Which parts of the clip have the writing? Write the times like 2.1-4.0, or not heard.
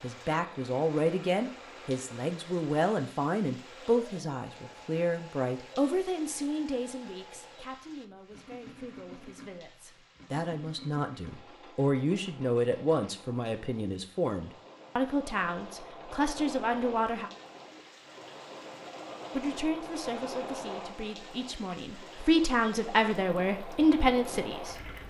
not heard.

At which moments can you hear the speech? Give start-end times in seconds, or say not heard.
0.0-17.3, 19.3-24.8.